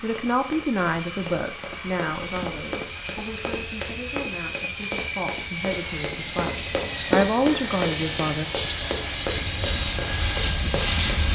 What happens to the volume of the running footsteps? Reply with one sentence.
The loudness of the running footsteps goes up, then down.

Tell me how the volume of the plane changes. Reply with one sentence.
The volume of the plane goes up.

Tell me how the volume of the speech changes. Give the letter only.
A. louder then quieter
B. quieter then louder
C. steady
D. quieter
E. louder
B.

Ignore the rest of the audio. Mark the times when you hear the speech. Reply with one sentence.
The speech can be heard from 0.0 to 8.4 s.